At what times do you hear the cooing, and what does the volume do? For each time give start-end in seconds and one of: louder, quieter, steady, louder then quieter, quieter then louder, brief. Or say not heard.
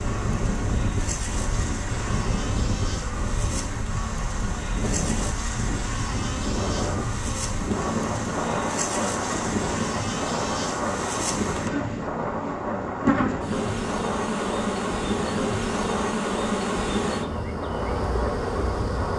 not heard.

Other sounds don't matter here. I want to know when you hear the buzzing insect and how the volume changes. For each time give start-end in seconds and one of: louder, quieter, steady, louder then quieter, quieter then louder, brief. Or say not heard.
0.0-19.1 louder.